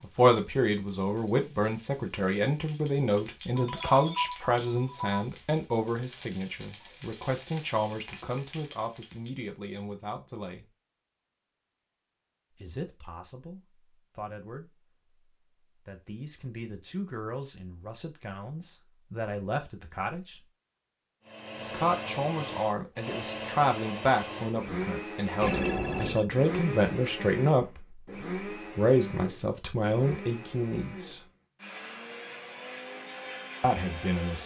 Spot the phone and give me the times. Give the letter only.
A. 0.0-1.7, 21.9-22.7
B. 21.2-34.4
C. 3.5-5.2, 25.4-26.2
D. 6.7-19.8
C.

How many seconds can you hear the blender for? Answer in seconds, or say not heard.
13 s.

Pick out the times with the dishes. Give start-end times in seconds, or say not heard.
not heard.